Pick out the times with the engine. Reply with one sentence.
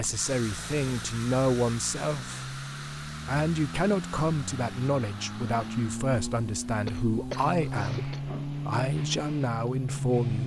The engine can be heard from 0.0 to 10.4 s.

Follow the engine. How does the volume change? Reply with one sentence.
The volume of the engine goes up.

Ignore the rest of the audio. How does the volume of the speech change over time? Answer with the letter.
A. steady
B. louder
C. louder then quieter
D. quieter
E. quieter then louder
A.